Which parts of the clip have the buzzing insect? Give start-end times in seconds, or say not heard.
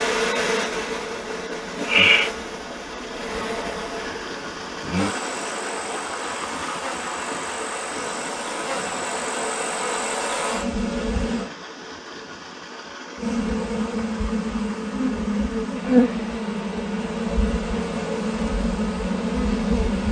0.0-11.5, 13.2-20.0.